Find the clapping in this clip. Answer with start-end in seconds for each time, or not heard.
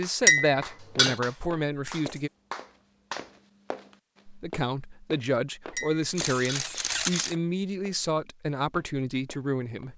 0.0-3.3.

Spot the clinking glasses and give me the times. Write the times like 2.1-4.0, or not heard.
0.2-1.1, 5.7-6.7.